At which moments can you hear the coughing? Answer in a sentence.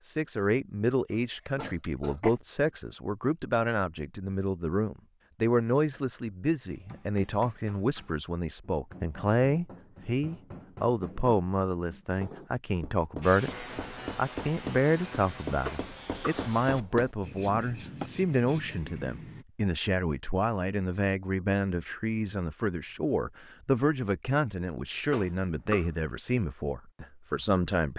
You can hear the coughing from 1.1 to 2.4 s, from 15.7 to 16.4 s and from 25.1 to 25.9 s.